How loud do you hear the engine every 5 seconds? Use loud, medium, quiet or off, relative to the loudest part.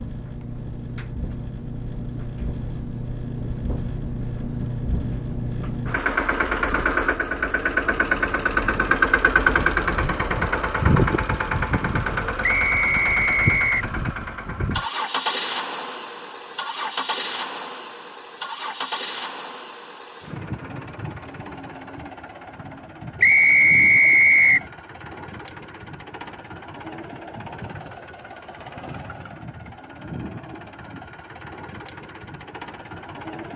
medium, loud, loud, medium, quiet, quiet, quiet.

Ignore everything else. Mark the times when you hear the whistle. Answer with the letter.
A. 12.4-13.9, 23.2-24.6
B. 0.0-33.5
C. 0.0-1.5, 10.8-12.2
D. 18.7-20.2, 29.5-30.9
A.